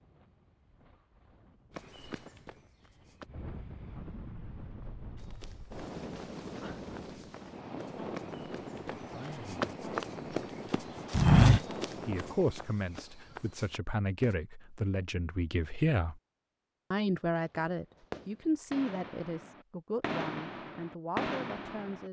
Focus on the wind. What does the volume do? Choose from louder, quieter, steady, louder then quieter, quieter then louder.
louder.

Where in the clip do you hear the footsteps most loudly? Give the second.
11 s.